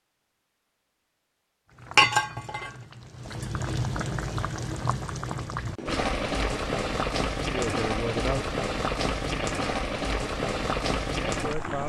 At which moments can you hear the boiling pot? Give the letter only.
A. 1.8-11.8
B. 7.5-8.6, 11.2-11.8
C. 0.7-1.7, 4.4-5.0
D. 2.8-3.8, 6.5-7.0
A.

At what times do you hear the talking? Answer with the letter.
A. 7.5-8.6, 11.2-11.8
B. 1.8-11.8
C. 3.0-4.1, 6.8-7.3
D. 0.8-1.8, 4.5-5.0
A.